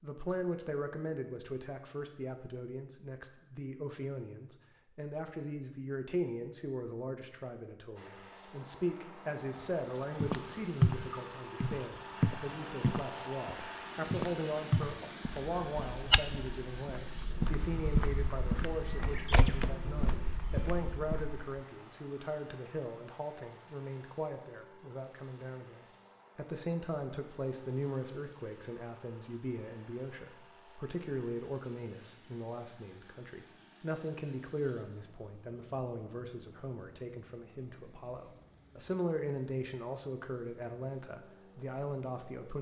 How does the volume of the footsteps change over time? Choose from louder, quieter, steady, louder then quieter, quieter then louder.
quieter.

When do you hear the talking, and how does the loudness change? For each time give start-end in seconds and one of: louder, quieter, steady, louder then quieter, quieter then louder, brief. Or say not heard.
0.0-42.5 steady.